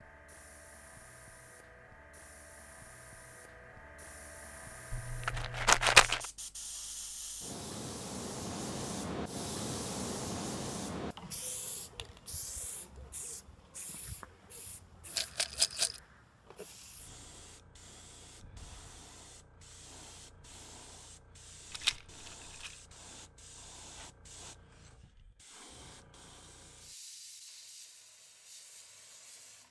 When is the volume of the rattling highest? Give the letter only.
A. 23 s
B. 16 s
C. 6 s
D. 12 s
C.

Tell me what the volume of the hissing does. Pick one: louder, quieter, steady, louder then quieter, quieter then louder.
louder then quieter.